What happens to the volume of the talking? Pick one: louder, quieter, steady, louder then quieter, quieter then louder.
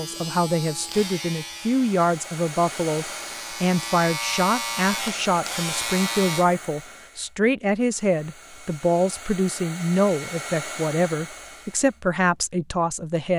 steady.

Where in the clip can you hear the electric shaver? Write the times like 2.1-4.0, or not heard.
0.0-6.5.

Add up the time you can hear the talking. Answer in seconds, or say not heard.
13 s.